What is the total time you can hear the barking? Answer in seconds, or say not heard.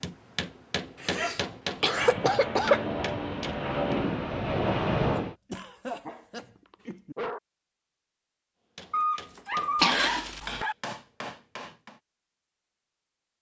5 s.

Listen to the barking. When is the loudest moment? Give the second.
9 s.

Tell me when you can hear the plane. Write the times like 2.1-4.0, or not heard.
1.8-5.3.